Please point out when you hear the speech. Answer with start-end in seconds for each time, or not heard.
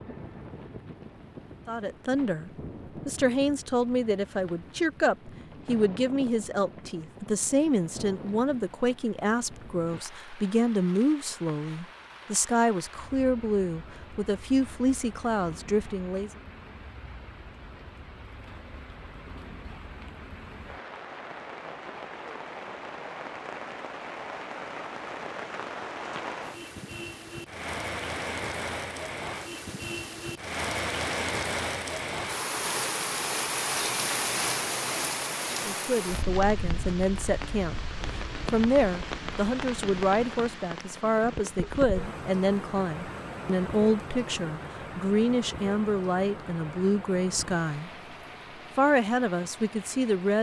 1.6-16.3, 35.5-47.9, 48.8-50.3.